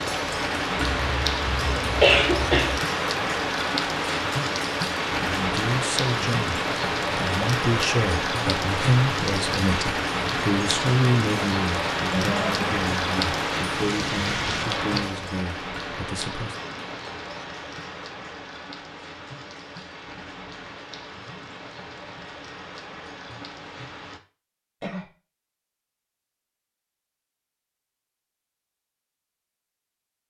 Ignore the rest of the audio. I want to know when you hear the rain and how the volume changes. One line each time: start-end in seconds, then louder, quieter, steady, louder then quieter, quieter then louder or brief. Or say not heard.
0.0-24.2 quieter.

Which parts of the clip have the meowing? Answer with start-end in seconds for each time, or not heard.
not heard.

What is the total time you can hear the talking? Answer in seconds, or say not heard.
11 s.